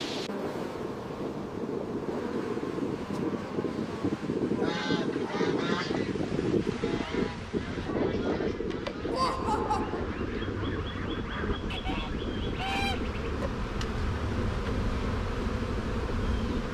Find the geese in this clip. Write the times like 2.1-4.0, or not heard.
4.6-13.0.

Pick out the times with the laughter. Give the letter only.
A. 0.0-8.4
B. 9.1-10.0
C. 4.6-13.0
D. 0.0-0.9
B.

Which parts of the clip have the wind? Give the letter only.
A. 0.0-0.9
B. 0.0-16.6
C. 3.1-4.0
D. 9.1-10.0
B.